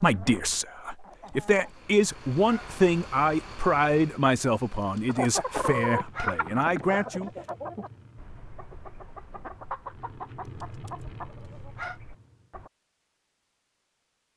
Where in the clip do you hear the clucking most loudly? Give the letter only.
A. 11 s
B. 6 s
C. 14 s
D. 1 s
B.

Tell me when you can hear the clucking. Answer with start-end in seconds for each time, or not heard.
0.0-1.7, 5.0-12.7.